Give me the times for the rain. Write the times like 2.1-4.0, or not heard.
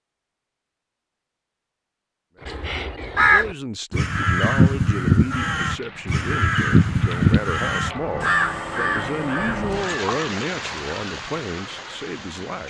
5.5-12.6.